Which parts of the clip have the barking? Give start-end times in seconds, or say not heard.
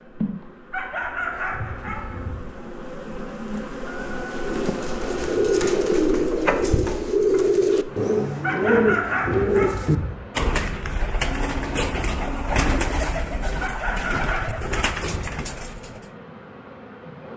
0.7-2.3, 8.4-10.1, 13.6-15.0.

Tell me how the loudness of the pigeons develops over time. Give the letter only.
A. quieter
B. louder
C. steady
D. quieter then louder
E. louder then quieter
A.